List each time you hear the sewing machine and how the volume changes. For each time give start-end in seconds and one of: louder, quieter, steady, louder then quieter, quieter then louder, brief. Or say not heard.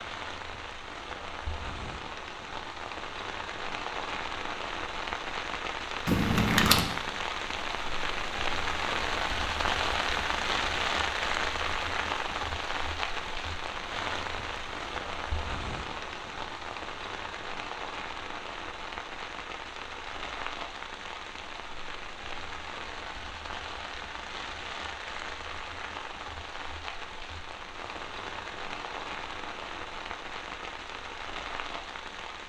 not heard.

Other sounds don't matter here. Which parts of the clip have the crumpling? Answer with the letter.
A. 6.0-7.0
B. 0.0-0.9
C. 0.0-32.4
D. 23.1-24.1
A.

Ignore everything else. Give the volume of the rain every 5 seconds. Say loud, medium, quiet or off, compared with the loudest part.
medium, loud, loud, medium, medium, medium, medium.